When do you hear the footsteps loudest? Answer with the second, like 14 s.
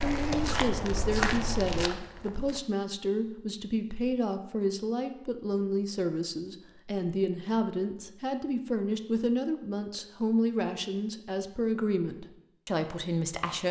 1 s.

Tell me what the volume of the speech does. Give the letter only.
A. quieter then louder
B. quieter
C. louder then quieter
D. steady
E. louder
D.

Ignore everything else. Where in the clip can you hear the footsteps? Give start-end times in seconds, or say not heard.
0.0-2.6.